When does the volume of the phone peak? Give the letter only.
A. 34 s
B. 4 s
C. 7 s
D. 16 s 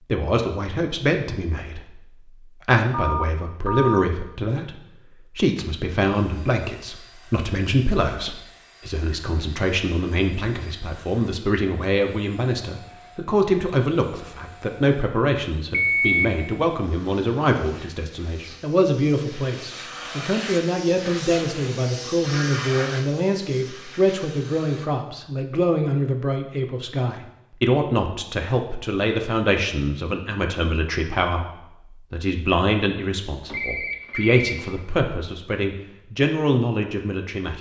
D.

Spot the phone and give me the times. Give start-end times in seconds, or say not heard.
2.9-4.1, 15.7-16.2, 33.5-35.0.